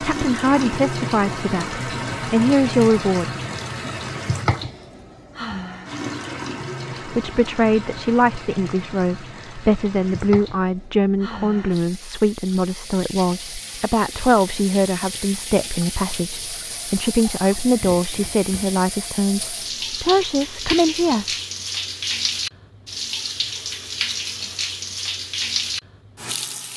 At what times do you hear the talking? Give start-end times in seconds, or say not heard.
0.0-3.3, 7.0-21.2.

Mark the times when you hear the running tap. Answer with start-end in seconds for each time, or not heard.
0.0-26.7.